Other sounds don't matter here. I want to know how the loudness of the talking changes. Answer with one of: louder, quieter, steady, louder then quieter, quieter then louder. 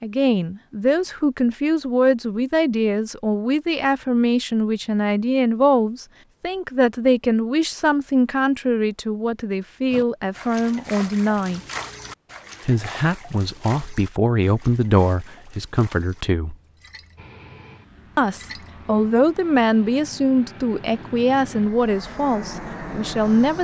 steady.